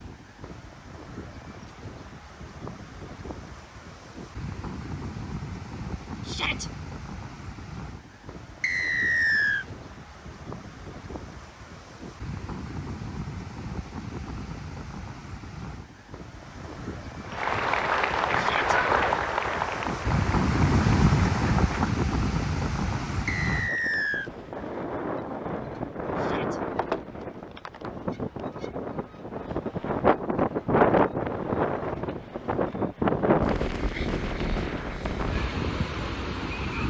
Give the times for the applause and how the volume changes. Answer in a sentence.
The applause can be heard from 17.2 to 22.1 s, getting quieter.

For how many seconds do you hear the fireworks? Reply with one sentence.
You can't hear the fireworks here.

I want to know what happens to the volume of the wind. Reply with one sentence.
The volume of the wind goes up.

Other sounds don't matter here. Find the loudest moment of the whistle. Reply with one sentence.
The volume of the whistle peaks at 9 seconds.